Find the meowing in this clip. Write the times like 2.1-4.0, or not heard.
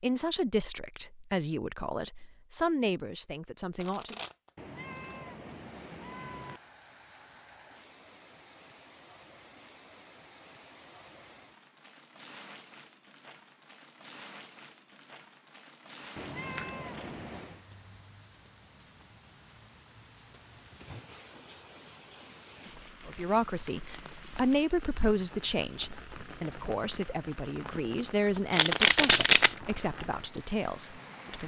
4.5-6.6, 16.1-17.6.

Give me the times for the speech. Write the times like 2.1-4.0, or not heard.
0.0-4.2, 23.1-31.4.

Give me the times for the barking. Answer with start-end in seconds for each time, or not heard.
not heard.